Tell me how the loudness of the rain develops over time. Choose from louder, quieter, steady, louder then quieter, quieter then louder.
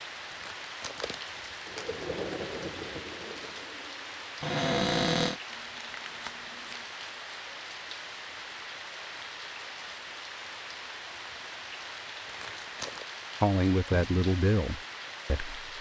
steady.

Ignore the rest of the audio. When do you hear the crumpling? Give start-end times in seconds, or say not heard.
0.3-1.9, 5.5-6.8, 12.2-13.1.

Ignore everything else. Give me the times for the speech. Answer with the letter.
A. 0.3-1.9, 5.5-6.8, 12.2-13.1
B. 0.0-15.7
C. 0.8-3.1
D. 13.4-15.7
D.